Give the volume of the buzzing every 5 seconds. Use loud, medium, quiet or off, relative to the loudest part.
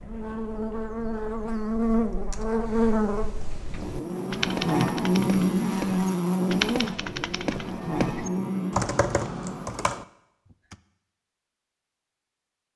loud, loud, off.